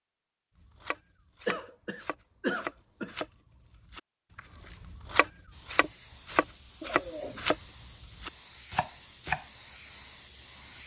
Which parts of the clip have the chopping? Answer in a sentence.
The chopping can be heard from 0.6 to 9.4 s.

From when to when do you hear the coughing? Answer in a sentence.
The coughing can be heard from 1.4 to 3.1 s and from 6.8 to 7.5 s.